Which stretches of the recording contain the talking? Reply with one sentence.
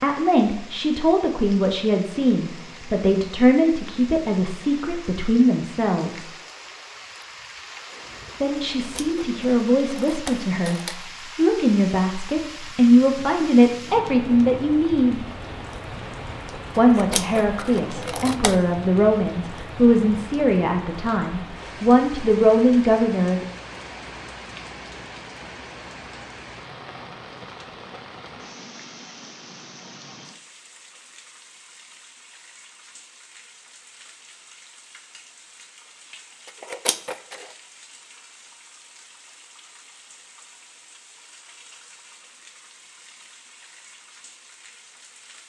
The talking can be heard from 0.0 to 6.3 s, from 8.4 to 15.2 s and from 16.8 to 23.4 s.